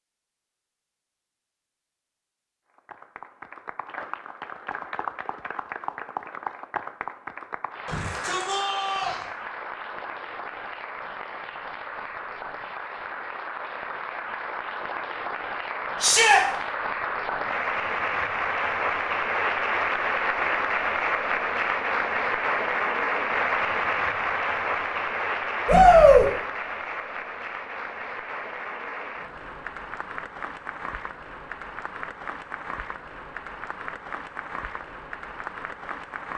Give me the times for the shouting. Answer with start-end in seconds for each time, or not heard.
7.8-9.2, 16.0-16.4, 25.6-26.2.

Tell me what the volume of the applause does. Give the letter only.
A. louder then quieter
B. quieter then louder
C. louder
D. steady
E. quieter
A.